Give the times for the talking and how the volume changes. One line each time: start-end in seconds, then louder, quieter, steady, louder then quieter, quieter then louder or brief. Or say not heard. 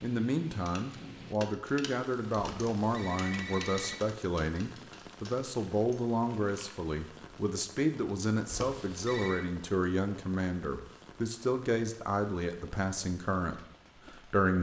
0.0-14.5 steady.